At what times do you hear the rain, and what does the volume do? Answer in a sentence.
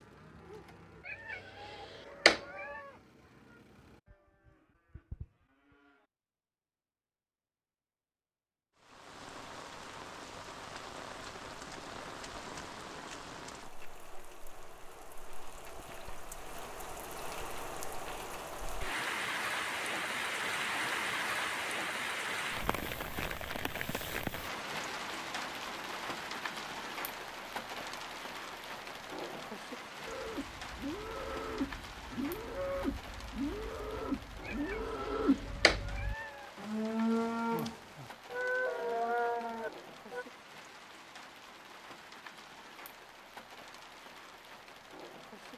You can hear the rain from 8.8 to 45.5 s, getting louder then quieter.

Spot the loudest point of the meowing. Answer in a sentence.
The volume of the meowing peaks at 2 seconds.